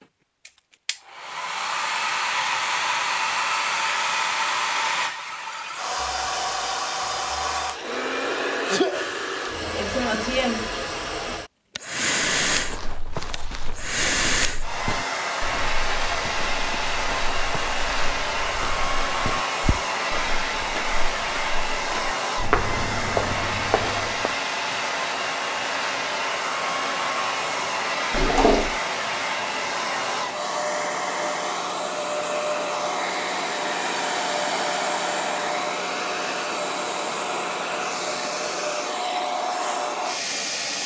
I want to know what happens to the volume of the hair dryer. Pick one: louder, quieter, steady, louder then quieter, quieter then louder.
steady.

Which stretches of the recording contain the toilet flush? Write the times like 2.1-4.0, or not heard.
28.1-28.8.